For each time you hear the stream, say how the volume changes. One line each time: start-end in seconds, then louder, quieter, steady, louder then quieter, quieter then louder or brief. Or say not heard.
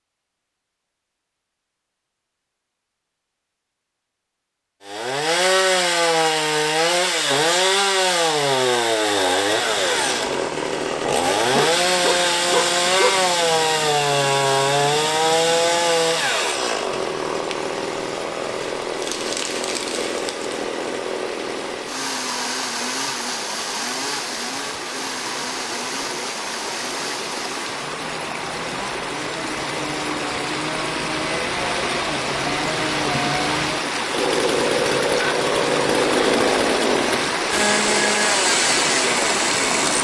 9.4-39.9 louder.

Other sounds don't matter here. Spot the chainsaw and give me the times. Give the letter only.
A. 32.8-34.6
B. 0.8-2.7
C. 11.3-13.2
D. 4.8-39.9
D.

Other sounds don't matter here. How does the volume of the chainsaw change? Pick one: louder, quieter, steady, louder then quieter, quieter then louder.
quieter then louder.